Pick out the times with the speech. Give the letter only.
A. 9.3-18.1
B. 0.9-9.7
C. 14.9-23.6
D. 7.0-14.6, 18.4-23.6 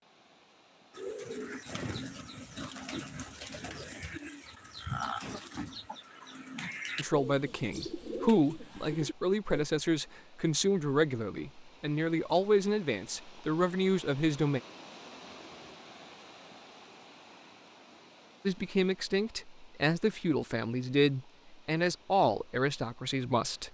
D.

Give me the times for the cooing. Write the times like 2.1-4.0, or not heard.
0.9-9.7.